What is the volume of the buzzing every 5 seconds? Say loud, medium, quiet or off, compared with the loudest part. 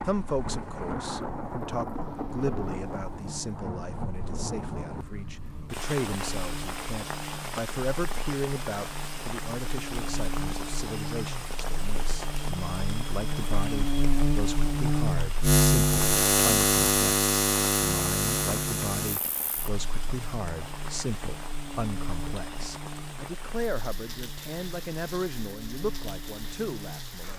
quiet, quiet, medium, loud, quiet, quiet.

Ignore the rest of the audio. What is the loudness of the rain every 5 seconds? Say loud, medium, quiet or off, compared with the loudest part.
loud, loud, loud, medium, medium, medium.